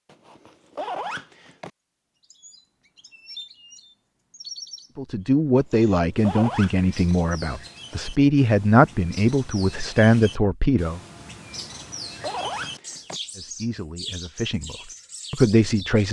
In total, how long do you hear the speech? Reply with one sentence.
You can hear the speech for 9 seconds altogether.